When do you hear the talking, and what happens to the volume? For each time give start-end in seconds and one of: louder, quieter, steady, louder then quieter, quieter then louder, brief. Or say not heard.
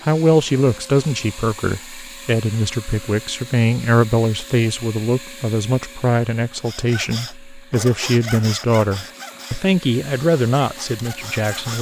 0.0-11.7 steady.